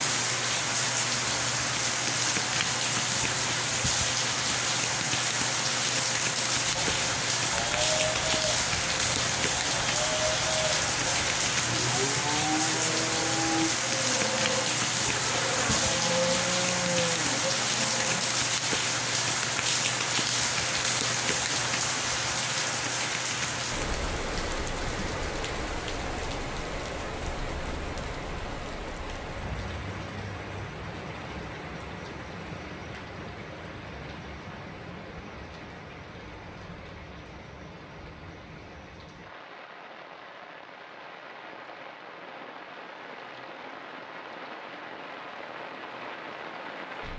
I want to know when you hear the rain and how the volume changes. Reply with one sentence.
The rain can be heard from 0.0 to 47.1 s, getting quieter.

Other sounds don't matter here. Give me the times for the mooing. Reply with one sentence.
The mooing can be heard from 6.7 to 18.2 s.